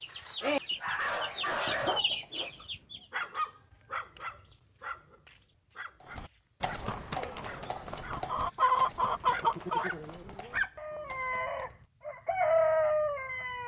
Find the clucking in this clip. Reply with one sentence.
You can hear the clucking from 0.0 to 3.2 s and from 8.1 to 13.6 s.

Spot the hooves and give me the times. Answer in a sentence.
The hooves can be heard from 6.0 to 11.8 s.